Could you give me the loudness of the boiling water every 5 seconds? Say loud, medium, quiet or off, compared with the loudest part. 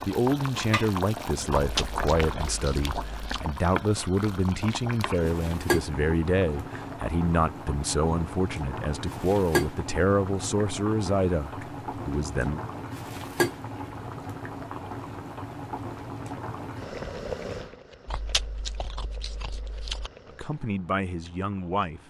loud, loud, loud, medium, quiet.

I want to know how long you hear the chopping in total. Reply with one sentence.
The chopping can't be heard in this clip.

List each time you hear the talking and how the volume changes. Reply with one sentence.
You can hear the talking from 0.0 to 12.6 s, at a steady volume; and briefly from 20.2 to 22.0 s.